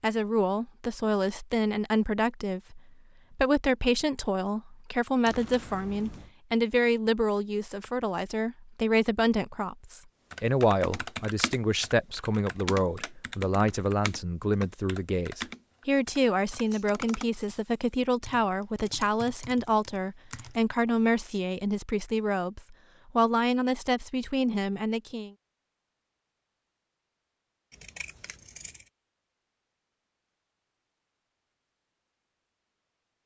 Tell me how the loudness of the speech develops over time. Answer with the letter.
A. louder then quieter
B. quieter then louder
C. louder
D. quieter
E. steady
E.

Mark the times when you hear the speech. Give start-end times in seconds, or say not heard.
0.0-25.3.